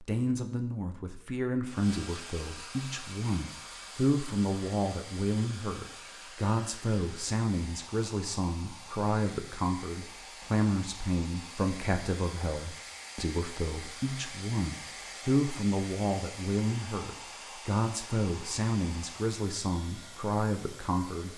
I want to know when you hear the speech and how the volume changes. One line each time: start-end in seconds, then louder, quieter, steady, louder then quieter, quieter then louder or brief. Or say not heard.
0.0-21.3 steady.